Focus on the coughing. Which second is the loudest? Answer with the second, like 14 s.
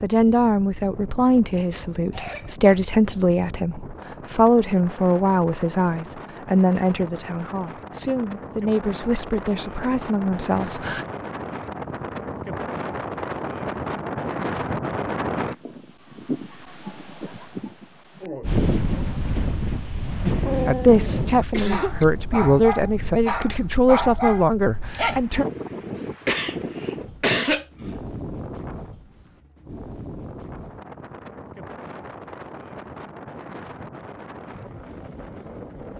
27 s.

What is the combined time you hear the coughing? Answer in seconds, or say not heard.
3 s.